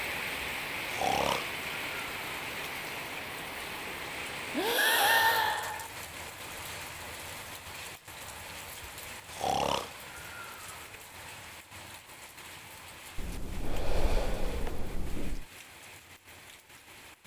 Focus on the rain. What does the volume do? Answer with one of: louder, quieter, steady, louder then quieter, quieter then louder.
quieter.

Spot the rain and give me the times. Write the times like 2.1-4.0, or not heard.
0.0-17.2.